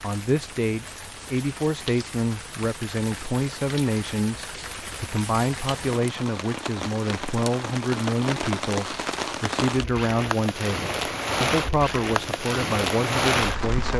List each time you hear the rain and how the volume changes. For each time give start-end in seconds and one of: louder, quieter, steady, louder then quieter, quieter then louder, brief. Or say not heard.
0.0-13.9 louder.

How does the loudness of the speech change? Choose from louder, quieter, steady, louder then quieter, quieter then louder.
steady.